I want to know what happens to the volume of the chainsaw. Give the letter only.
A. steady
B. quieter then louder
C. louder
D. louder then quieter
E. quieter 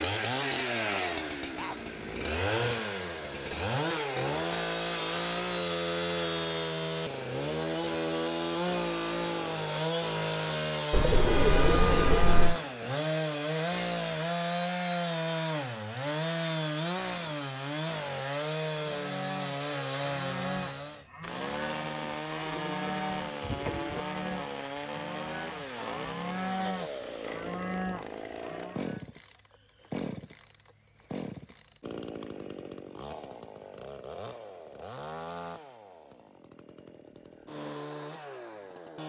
E.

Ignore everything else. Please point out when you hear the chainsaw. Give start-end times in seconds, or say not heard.
0.0-39.0.